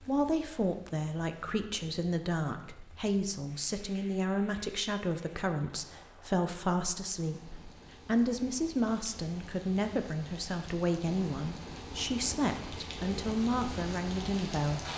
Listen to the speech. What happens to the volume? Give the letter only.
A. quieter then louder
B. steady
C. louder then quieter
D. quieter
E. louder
B.